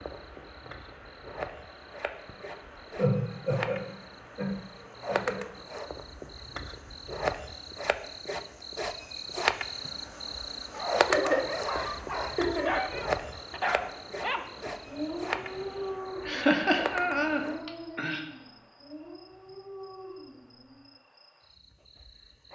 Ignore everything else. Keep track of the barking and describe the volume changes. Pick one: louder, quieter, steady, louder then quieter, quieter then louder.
quieter.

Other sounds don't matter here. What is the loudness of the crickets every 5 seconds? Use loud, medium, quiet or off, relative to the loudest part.
medium, loud, loud, medium, quiet.